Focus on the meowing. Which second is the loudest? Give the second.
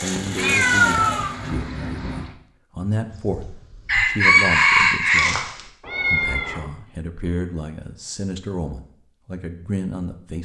1 s.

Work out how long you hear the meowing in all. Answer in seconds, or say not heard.
3 s.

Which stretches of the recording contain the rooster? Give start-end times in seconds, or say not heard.
3.1-5.6.